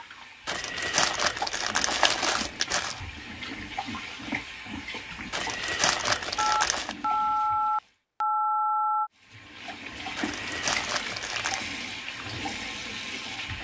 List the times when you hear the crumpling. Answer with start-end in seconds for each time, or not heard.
0.5-3.0, 5.3-7.0, 10.2-11.7.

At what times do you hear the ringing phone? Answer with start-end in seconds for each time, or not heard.
6.3-9.1.